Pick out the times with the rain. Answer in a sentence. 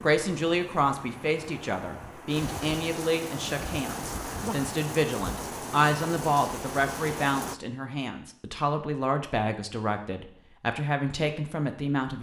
The rain can be heard from 0.0 to 7.5 s.